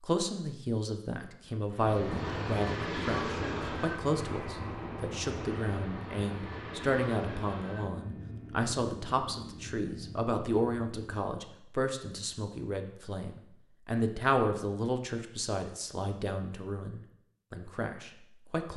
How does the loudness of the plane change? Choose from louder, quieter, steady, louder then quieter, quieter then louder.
quieter.